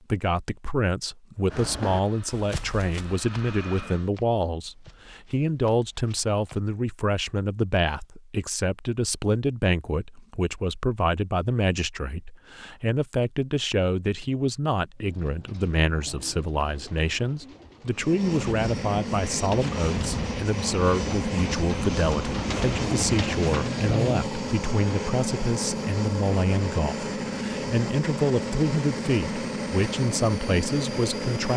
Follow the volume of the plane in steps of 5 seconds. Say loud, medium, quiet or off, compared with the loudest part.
quiet, off, off, loud, loud, loud, loud.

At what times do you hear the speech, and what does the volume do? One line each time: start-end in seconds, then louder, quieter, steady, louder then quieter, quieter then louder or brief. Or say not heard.
0.1-31.5 steady.